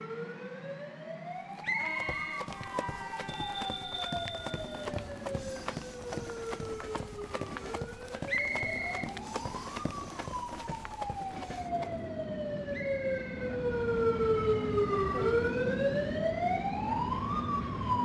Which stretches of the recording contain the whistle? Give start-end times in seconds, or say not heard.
1.6-3.2, 8.2-9.8, 12.7-13.6.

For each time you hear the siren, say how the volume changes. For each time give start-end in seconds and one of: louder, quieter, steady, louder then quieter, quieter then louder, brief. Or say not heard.
0.0-18.0 louder.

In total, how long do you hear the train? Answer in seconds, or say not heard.
18 s.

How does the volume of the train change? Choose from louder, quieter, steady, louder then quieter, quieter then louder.
louder.